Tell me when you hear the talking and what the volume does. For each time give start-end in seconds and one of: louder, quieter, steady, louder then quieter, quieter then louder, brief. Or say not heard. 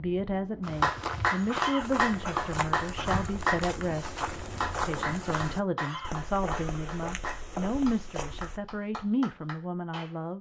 0.0-10.3 steady.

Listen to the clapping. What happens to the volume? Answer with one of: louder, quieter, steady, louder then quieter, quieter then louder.
quieter.